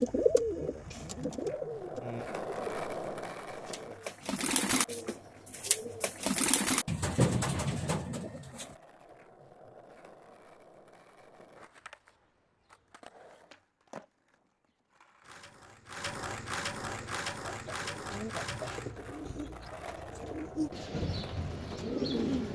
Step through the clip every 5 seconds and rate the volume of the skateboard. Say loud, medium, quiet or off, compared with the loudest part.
loud, quiet, quiet, loud, medium.